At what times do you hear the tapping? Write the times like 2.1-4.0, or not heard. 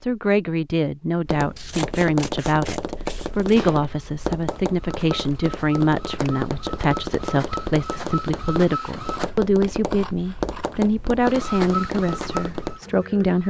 1.2-12.8.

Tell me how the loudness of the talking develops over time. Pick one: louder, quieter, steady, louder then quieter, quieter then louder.
steady.